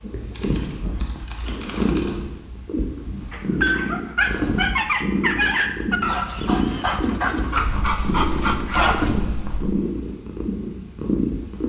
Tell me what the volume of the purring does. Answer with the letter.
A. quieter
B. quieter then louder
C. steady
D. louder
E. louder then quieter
C.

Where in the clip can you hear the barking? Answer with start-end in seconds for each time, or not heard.
3.3-9.1.